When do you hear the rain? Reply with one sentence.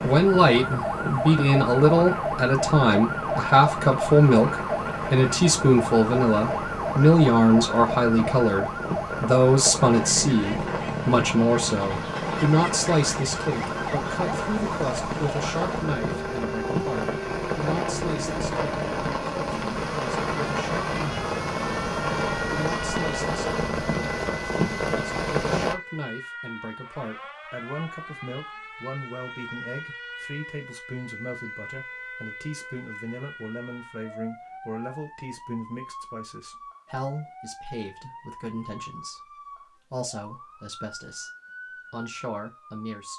The rain can be heard from 0.0 to 25.8 s.